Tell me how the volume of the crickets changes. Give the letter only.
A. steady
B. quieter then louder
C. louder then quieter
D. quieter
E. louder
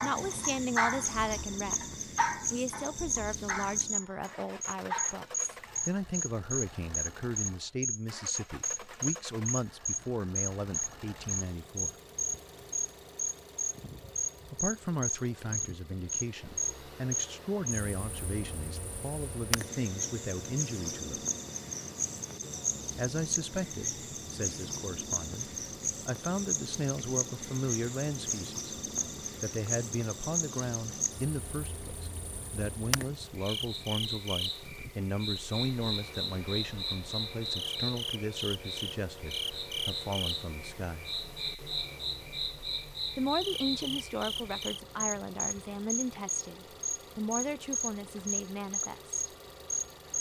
A.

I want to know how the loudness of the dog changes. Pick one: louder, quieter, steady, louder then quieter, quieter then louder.
quieter then louder.